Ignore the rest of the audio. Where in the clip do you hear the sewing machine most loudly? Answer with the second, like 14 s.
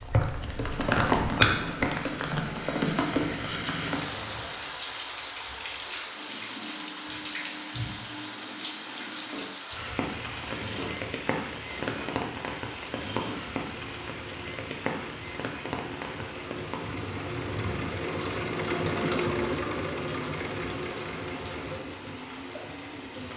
19 s.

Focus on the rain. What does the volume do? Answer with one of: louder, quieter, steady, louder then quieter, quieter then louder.
quieter.